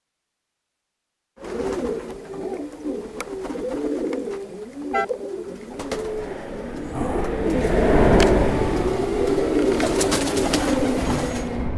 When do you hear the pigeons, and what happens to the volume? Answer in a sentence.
You can hear the pigeons from 1.4 to 11.6 s, getting louder.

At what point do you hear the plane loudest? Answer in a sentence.
The volume of the plane peaks at 8 seconds.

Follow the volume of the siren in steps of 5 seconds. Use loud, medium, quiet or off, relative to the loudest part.
off, loud, loud.